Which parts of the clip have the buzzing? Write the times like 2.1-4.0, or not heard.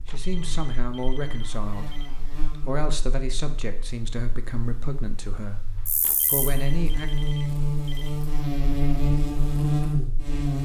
0.0-10.6.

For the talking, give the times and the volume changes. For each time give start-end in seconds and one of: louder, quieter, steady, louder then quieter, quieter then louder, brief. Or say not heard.
0.0-7.1 steady.